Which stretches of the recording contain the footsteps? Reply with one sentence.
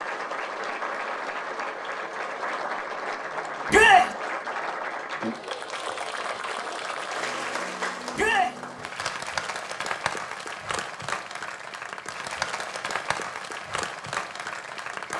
You can't hear the footsteps here.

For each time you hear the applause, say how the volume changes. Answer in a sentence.
You can hear the applause from 0.0 to 15.1 s, at a steady volume.